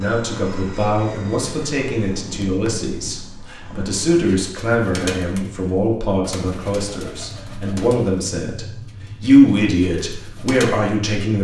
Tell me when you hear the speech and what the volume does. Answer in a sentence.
You can hear the speech from 0.0 to 11.4 s, getting louder.